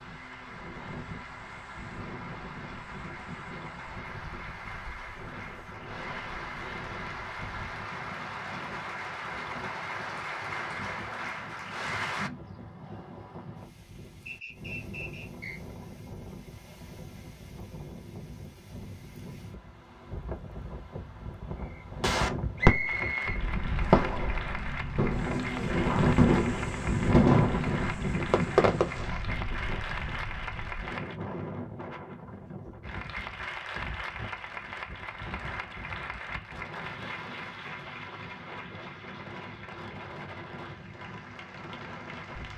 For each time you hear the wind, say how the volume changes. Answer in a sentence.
You can hear the wind from 0.0 to 42.5 s, getting louder then quieter.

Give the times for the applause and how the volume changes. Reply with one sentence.
The applause can be heard from 0.0 to 12.3 s, getting louder; from 22.9 to 31.2 s, at a steady volume; and from 32.8 to 42.5 s, getting quieter.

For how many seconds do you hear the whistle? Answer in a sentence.
The whistle can be heard for 3 seconds in total.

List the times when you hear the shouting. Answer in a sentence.
The shouting can't be heard in this clip.